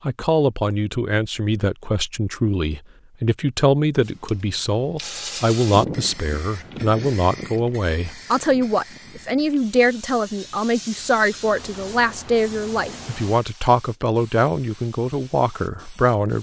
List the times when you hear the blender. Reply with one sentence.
The blender can't be heard in this clip.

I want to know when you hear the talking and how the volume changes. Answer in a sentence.
The talking can be heard from 0.1 to 16.3 s, at a steady volume.